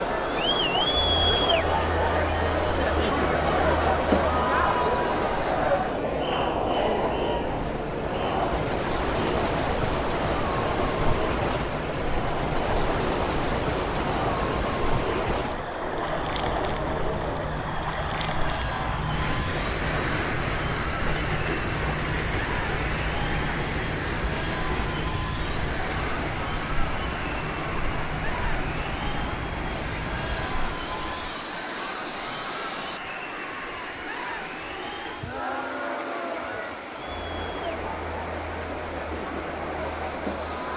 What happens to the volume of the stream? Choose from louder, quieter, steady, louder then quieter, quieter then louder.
quieter.